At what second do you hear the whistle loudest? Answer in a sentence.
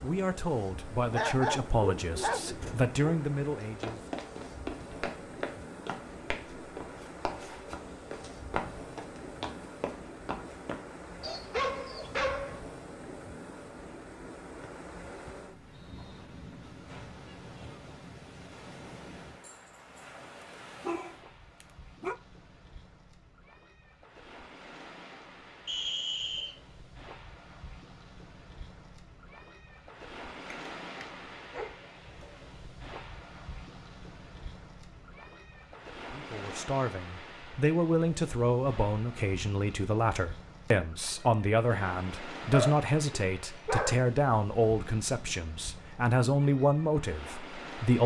The volume of the whistle peaks at 26 seconds.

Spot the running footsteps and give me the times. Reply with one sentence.
You can hear the running footsteps from 3.6 to 10.8 s.